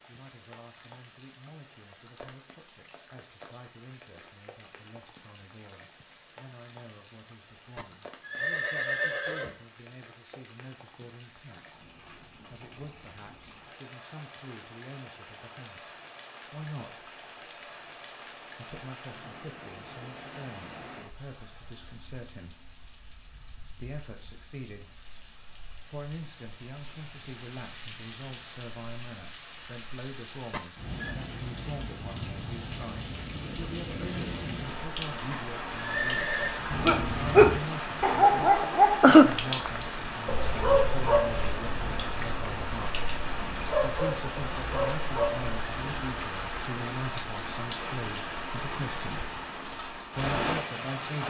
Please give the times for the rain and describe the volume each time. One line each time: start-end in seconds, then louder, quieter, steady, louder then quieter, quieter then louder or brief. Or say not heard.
0.0-51.2 louder.